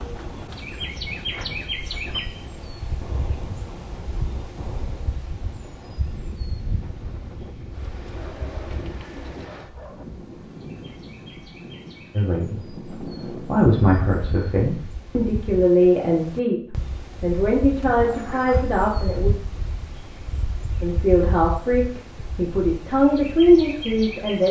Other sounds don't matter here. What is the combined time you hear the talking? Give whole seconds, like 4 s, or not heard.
11 s.